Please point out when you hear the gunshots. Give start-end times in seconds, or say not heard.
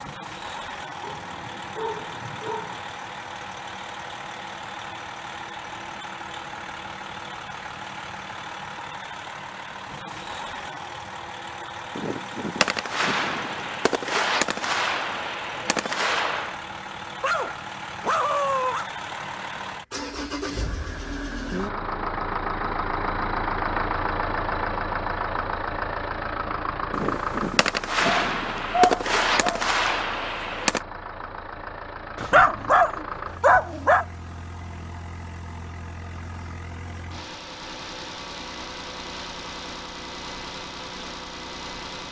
11.9-16.6, 26.9-30.8.